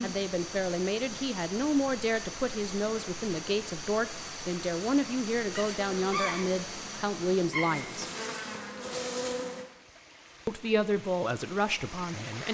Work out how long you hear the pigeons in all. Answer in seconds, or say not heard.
not heard.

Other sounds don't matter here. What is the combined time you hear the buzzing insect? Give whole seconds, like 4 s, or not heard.
4 s.